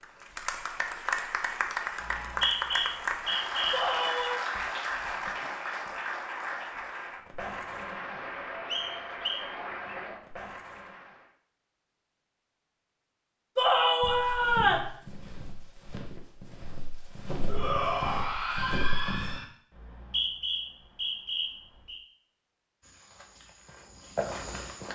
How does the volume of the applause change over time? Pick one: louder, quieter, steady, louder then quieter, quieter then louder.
quieter.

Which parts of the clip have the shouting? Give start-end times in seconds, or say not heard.
3.7-4.5, 13.6-14.8, 17.4-19.4.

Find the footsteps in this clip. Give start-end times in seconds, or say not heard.
14.0-19.4, 22.8-24.8.